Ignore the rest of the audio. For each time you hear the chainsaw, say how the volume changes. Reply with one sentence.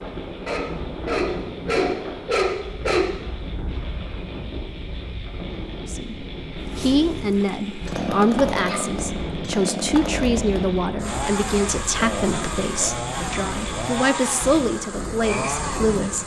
The chainsaw can be heard from 6.6 to 16.2 s, at a steady volume.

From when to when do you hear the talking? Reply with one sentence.
You can hear the talking from 5.8 to 16.2 s.